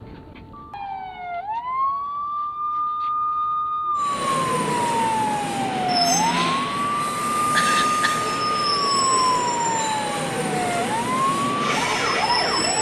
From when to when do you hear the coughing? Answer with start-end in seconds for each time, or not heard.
7.5-8.3.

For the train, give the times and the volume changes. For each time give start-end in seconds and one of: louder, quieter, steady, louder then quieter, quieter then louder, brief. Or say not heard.
4.0-12.7 steady.